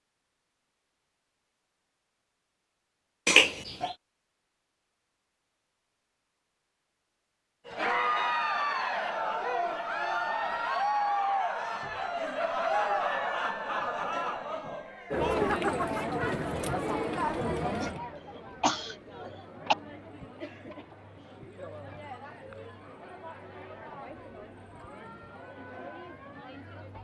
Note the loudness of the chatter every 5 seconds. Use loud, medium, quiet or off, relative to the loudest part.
off, loud, loud, loud, quiet, quiet.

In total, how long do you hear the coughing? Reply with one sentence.
The coughing can be heard for 3 seconds in total.